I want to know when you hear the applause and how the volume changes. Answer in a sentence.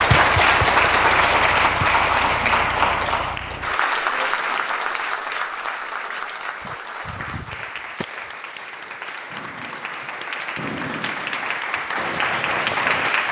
The applause can be heard from 0.0 to 13.2 s, getting quieter then louder.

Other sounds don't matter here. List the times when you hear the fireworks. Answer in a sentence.
The fireworks can be heard from 6.6 to 13.1 s.